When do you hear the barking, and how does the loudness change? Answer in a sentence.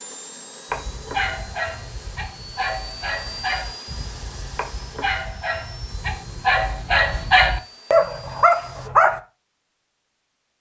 You can hear the barking from 0.7 to 9.2 s, getting louder.